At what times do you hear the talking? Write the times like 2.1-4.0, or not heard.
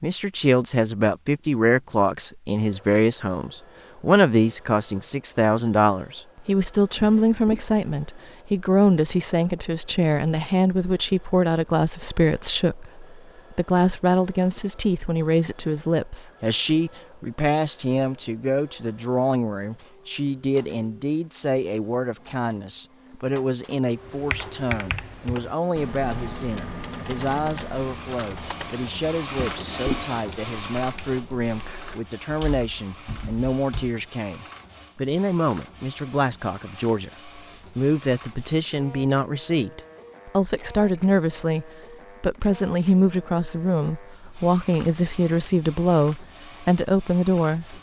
0.0-47.7.